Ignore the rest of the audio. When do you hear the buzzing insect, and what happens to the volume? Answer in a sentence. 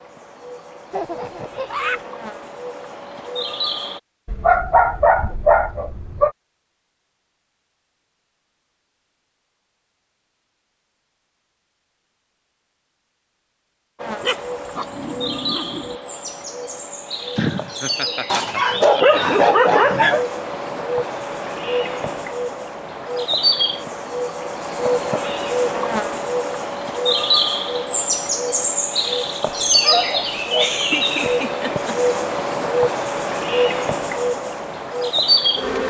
The buzzing insect can be heard from 0.0 to 4.0 s, getting louder; and from 13.9 to 35.8 s, getting louder.